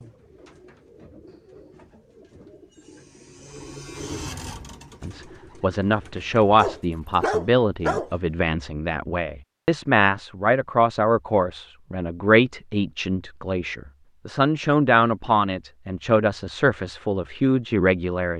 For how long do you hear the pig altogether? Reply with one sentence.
The pig can't be heard in this clip.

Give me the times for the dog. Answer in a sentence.
The dog can be heard from 6.5 to 8.1 s.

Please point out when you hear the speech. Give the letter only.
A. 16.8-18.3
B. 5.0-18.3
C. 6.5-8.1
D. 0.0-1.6
B.